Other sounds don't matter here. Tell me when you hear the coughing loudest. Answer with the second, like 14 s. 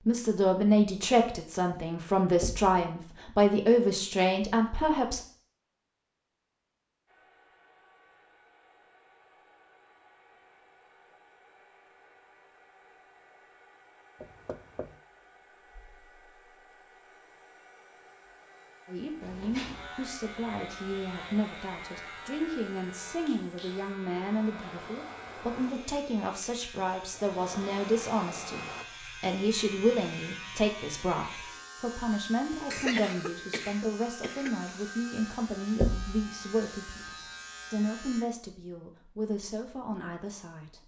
33 s.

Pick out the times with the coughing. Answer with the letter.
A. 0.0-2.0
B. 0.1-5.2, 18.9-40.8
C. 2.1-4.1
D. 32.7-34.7
D.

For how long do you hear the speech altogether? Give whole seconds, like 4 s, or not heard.
27 s.